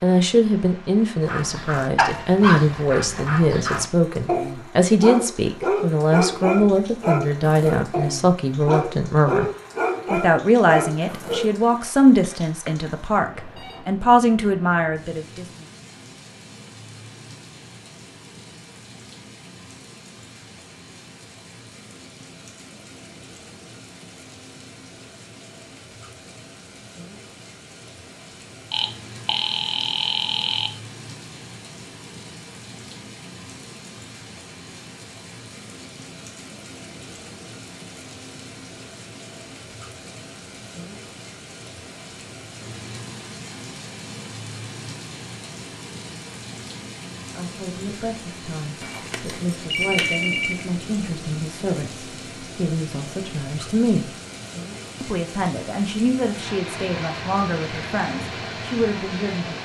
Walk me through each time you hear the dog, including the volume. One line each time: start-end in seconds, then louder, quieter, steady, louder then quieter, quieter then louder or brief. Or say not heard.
1.2-11.8 steady.